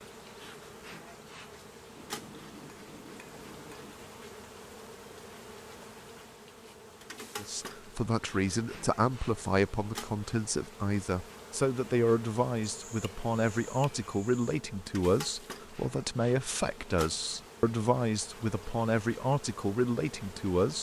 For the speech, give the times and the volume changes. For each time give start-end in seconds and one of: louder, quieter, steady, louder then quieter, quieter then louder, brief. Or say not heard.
7.3-20.7 steady.